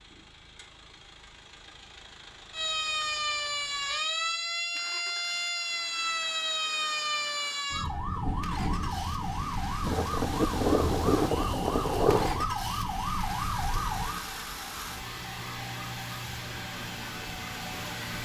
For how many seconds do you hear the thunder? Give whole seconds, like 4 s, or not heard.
3 s.